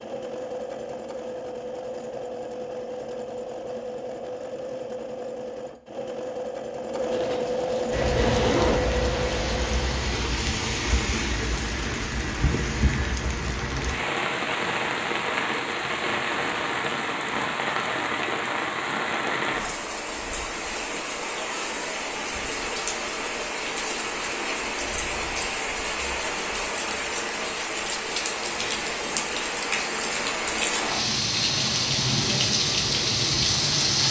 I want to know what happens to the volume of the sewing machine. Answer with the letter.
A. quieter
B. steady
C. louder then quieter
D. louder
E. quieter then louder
D.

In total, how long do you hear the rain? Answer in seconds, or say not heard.
26 s.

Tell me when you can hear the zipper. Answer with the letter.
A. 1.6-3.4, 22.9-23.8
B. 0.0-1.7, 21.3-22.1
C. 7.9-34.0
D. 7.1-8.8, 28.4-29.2
D.